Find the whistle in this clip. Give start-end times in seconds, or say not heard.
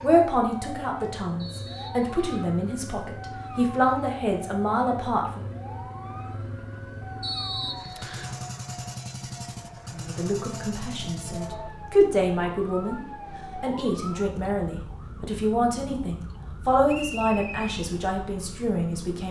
1.4-2.5, 7.2-8.3, 16.9-17.9.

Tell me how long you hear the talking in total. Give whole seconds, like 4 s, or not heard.
14 s.